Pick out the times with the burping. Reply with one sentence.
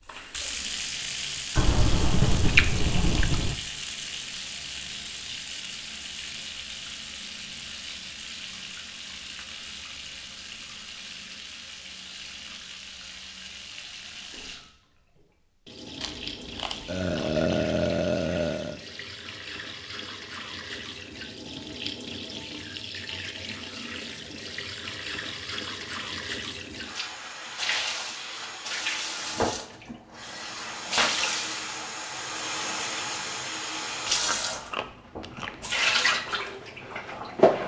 You can hear the burping from 16.9 to 18.8 s.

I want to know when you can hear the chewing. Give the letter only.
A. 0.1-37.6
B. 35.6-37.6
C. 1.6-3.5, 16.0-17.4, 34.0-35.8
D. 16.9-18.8
C.